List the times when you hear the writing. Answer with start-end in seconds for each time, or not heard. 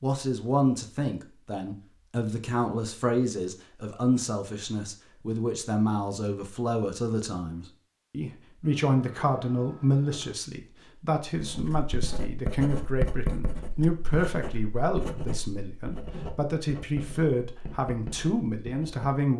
11.2-19.1.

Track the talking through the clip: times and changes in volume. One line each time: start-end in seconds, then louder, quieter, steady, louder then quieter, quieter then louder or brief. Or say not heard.
0.0-19.3 steady.